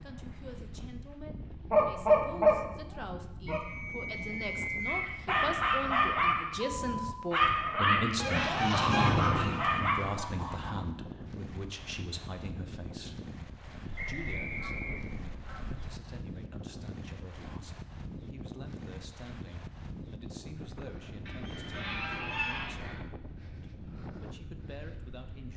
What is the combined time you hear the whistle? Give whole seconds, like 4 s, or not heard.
4 s.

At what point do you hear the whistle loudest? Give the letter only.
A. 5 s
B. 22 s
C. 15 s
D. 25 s
A.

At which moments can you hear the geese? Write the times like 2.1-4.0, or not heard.
1.6-3.6, 8.2-10.8, 13.8-16.0, 21.2-23.0.